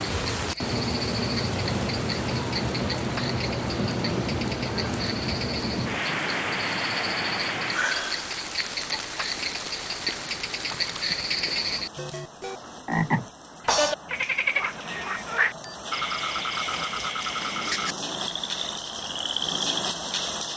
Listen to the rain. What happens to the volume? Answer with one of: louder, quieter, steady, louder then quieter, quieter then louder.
quieter then louder.